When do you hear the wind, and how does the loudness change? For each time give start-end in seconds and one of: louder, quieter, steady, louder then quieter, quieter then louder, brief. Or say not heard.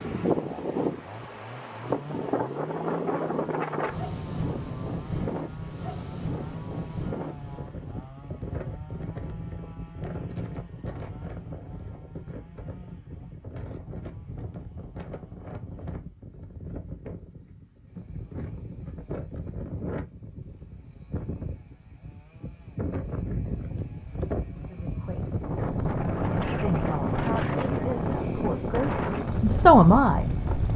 0.0-30.7 quieter then louder.